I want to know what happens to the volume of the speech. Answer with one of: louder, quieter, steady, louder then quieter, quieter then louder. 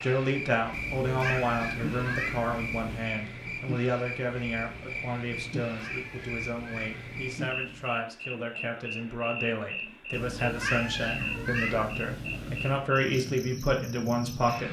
quieter then louder.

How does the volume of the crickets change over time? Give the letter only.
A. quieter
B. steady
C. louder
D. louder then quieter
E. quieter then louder
B.